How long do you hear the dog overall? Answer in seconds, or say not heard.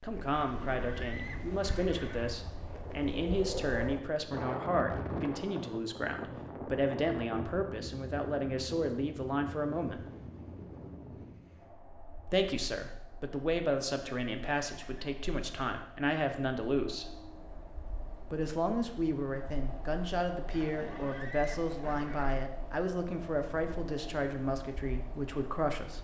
not heard.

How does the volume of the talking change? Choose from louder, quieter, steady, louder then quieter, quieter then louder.
steady.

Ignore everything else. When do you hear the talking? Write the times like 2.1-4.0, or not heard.
0.0-10.1, 12.2-17.1, 18.3-25.9.